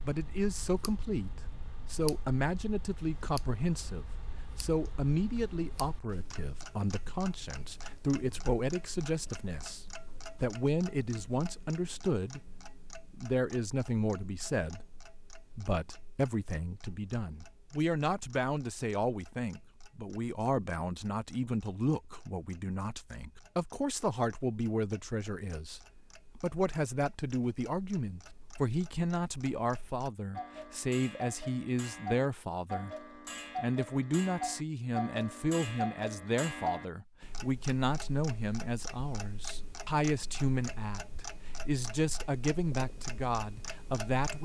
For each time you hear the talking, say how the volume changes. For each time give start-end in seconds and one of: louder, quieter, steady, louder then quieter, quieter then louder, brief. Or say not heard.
0.0-33.0 steady
33.5-44.4 steady.